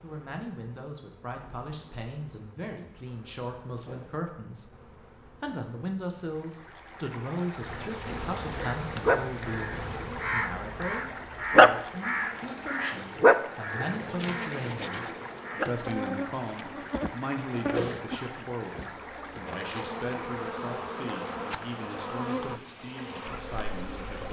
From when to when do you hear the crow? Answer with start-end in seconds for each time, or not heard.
8.6-15.7.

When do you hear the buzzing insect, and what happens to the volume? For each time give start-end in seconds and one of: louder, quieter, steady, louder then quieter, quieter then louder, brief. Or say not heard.
0.0-24.2 louder.